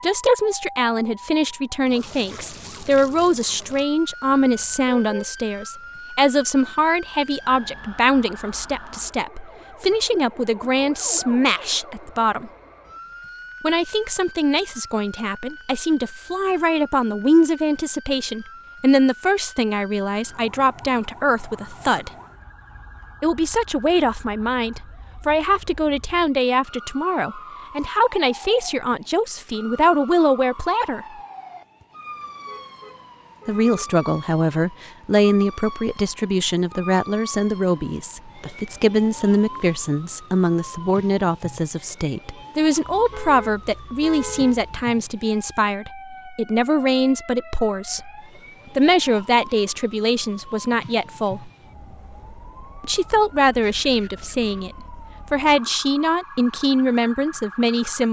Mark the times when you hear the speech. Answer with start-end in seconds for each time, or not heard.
0.0-12.5, 13.6-22.1, 23.2-31.1, 33.5-48.1, 48.8-51.5, 52.8-58.0.